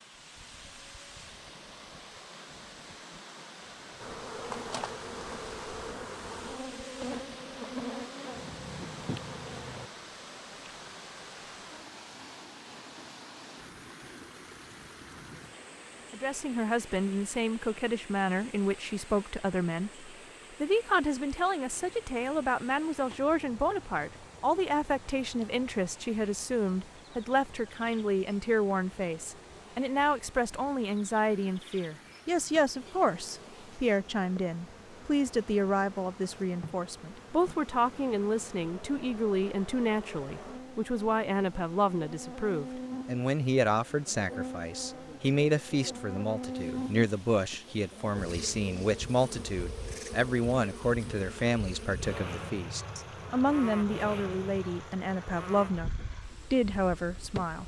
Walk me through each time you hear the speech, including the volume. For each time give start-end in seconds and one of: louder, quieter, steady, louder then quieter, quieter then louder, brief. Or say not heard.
16.1-57.6 steady.